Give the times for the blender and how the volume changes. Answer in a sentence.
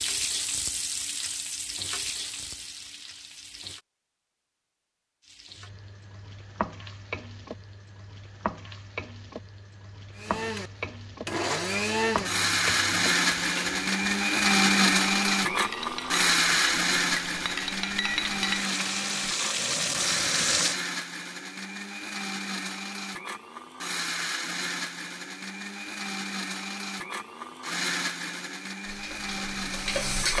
The blender can be heard from 10.2 to 30.3 s, getting quieter.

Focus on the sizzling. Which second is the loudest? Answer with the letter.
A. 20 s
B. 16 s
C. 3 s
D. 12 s
A.